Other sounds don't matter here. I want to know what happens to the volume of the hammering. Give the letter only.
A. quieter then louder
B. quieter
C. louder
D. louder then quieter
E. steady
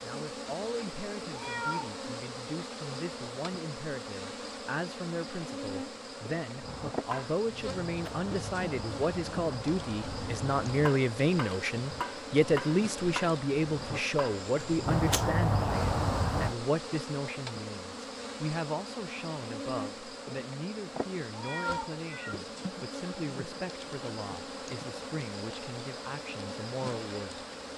C.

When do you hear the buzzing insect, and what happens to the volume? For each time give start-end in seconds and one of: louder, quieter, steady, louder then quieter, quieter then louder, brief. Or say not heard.
0.0-27.7 steady.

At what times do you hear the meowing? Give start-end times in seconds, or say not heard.
1.3-1.9, 21.3-22.4.